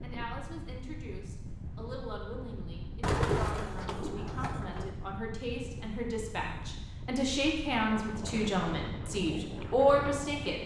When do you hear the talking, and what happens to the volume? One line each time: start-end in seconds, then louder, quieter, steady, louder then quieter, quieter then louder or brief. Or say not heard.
0.0-10.6 louder.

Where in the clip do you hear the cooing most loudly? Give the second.
3 s.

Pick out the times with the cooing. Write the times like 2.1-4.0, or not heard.
3.0-4.9.